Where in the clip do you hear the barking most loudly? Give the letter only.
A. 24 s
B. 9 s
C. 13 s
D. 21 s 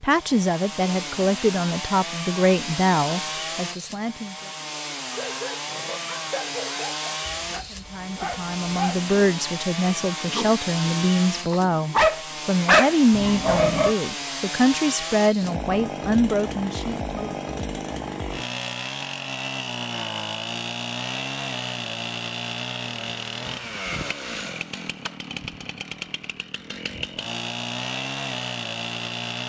C.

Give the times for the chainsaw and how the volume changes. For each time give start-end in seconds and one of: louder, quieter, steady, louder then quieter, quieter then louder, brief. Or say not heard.
0.1-29.4 steady.